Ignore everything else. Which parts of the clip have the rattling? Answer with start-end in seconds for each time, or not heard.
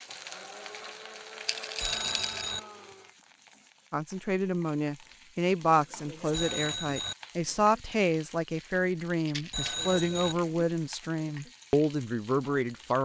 1.4-2.5, 9.2-9.8.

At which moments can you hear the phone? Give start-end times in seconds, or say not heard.
1.8-2.6, 6.3-7.2, 9.5-10.3.